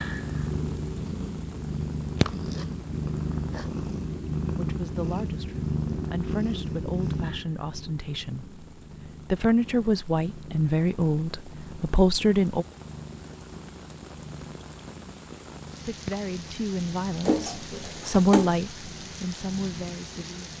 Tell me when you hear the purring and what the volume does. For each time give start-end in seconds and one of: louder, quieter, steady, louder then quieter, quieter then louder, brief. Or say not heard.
0.0-20.5 quieter.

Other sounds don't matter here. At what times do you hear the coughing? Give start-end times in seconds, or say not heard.
17.2-18.6.